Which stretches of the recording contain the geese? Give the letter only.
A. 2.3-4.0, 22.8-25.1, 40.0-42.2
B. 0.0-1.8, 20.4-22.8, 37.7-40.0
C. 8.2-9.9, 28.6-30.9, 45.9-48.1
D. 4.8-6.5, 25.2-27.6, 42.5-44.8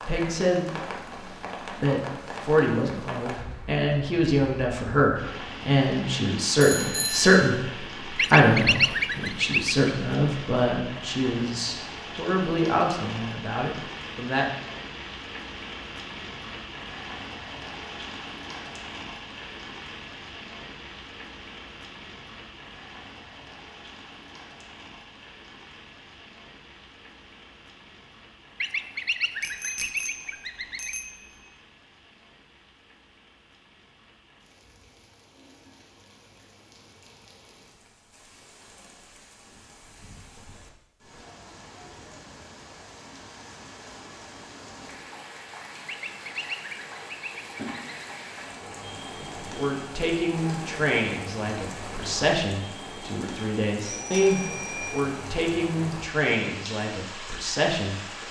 C.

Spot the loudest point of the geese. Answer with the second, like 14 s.
9 s.